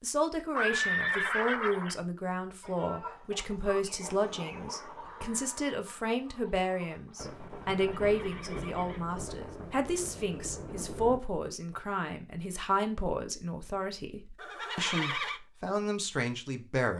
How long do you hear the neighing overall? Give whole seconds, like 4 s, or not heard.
4 s.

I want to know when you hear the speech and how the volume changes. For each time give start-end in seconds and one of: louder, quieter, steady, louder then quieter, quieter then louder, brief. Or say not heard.
0.0-16.9 steady.